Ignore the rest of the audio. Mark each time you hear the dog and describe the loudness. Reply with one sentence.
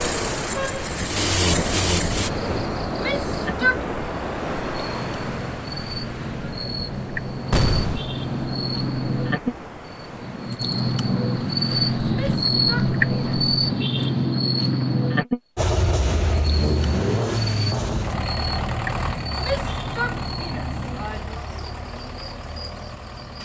The dog can't be heard in this clip.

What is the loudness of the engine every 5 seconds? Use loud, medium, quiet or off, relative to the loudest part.
loud, off, off, loud, medium.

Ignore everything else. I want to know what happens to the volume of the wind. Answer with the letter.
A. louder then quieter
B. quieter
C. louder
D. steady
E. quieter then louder
B.